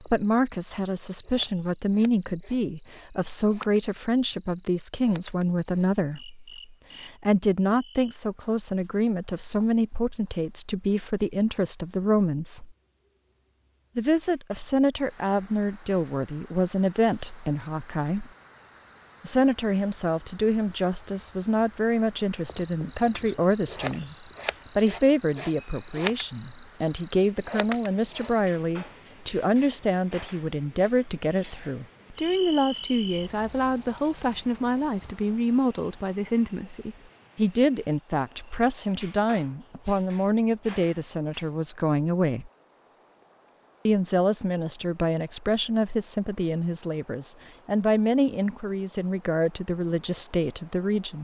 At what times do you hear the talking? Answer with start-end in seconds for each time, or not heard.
0.0-12.7, 13.9-18.3, 19.2-24.1, 24.8-42.5, 43.9-51.2.